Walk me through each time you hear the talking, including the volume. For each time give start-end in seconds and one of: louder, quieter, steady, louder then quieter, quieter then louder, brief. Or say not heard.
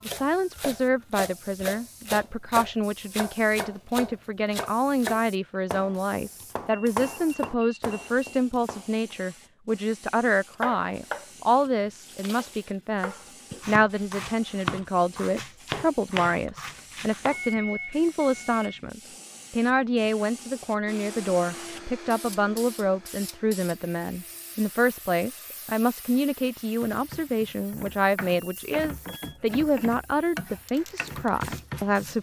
0.1-32.1 steady.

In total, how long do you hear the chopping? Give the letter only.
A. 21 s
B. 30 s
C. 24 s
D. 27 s
A.